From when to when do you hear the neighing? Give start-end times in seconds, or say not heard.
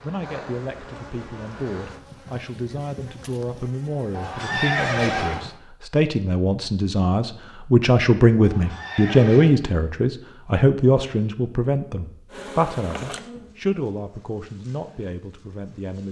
4.1-5.5, 8.4-9.6.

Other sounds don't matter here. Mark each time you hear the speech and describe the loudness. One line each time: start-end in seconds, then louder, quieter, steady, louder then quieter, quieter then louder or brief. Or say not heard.
0.0-16.0 louder then quieter.